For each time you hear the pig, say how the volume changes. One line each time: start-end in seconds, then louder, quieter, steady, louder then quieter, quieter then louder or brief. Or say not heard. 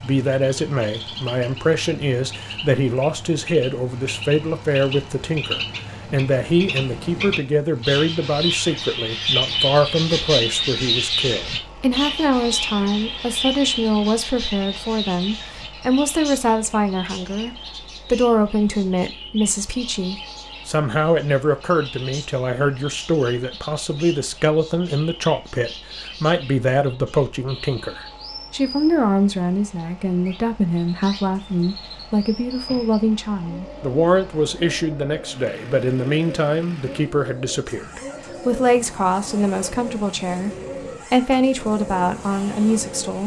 not heard.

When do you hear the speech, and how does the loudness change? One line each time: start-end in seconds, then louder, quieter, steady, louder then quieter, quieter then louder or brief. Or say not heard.
0.0-40.5 steady
41.1-43.2 brief.